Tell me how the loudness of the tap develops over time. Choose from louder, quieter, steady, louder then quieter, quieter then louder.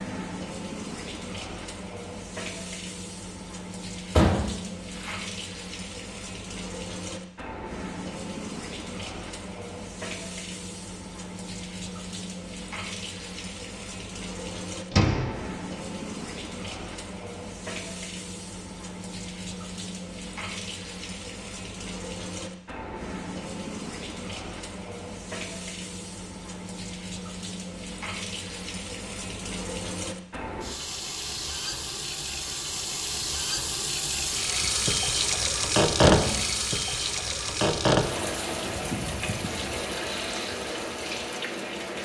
louder.